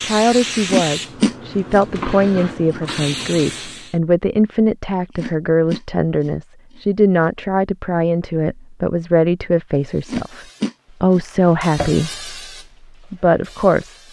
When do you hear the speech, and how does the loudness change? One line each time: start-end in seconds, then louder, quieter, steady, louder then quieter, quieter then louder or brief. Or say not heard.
0.0-12.2 steady
13.1-14.0 brief.